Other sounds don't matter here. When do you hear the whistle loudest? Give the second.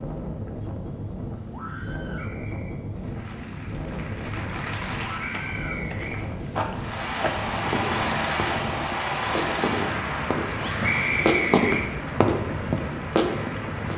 11 s.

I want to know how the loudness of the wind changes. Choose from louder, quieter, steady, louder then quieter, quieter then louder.
steady.